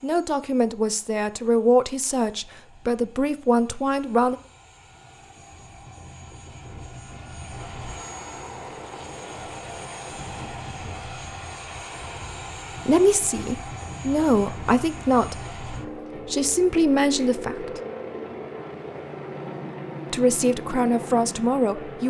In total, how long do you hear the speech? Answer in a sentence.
The speech can be heard for 10 seconds in total.